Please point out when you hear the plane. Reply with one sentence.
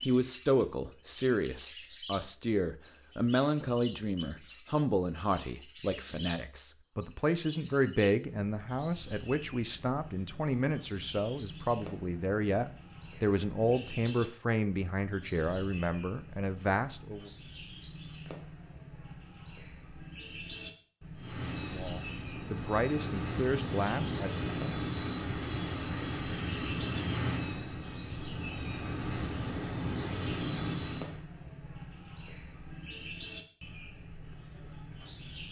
The plane can be heard from 21.1 to 31.2 s.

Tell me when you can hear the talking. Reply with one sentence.
You can hear the talking from 0.1 to 17.3 s and from 21.7 to 24.5 s.